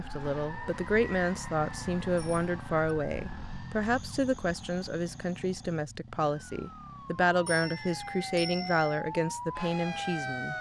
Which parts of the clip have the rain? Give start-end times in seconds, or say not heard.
not heard.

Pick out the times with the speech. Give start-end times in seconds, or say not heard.
0.0-10.5.